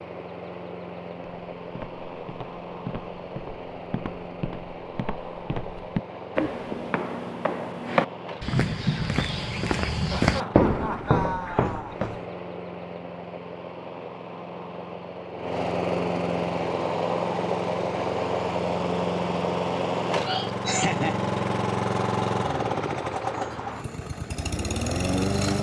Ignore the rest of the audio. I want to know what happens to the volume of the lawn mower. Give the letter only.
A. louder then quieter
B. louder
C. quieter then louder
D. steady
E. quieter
B.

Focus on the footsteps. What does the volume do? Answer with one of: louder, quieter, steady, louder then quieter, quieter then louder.
louder.